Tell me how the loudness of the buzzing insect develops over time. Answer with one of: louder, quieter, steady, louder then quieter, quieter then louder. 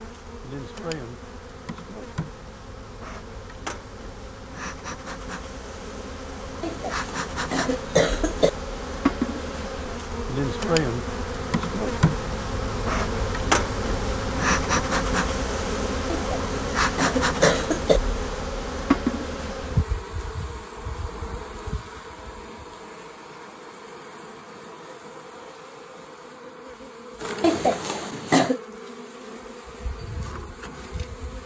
louder then quieter.